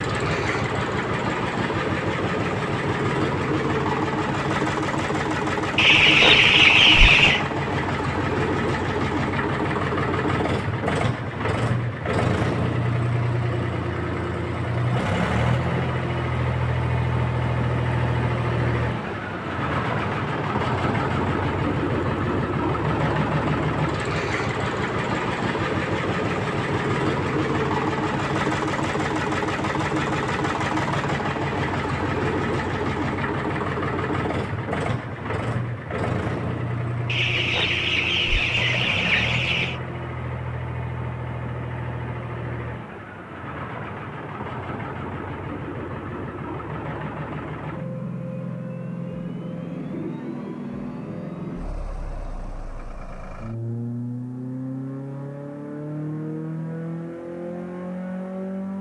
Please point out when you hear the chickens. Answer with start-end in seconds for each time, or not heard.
5.8-7.5, 37.0-39.8.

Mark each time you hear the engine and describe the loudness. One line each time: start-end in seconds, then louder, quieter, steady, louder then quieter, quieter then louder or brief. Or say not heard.
0.0-58.7 quieter.